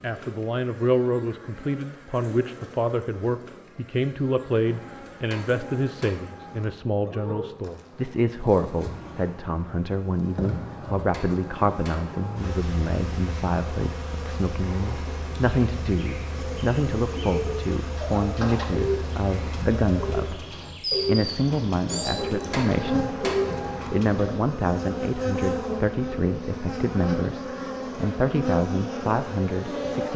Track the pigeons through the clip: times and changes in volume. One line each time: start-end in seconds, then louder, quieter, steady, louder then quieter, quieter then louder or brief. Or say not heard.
16.4-24.4 steady.